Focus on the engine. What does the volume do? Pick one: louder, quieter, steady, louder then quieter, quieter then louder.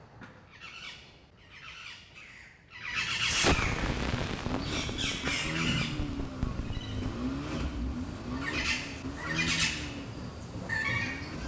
quieter.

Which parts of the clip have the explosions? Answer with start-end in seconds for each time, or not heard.
3.2-7.2.